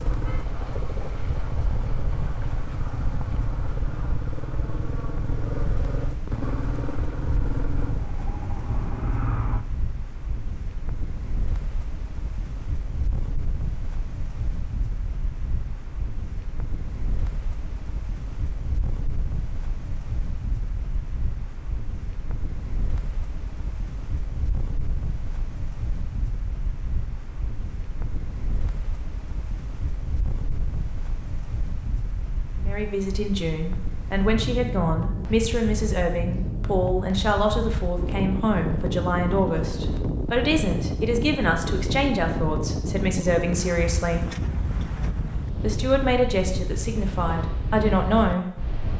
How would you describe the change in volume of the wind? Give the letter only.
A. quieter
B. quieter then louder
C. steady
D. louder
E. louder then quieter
D.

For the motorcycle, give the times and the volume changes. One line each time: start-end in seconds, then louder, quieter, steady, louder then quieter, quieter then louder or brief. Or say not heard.
0.0-9.7 steady.